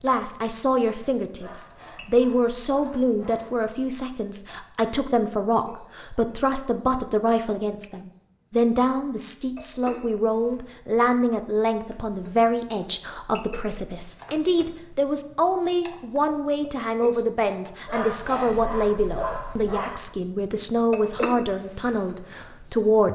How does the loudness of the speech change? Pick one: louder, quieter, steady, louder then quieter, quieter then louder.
steady.